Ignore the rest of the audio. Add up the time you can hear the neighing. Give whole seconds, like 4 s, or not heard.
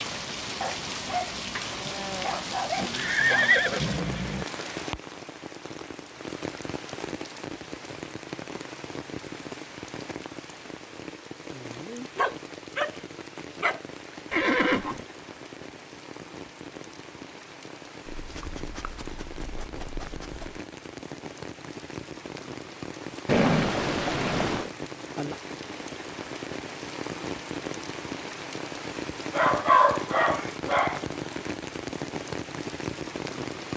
4 s.